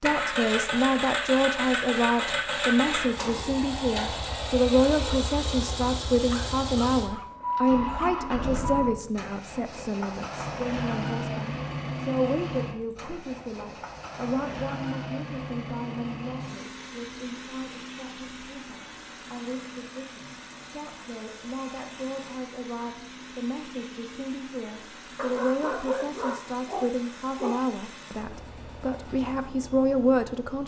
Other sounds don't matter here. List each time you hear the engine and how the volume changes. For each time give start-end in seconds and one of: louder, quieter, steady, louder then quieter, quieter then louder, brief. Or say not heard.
0.0-30.6 quieter.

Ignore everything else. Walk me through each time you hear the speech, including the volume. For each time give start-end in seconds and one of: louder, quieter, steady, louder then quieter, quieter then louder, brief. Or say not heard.
0.0-30.6 quieter then louder.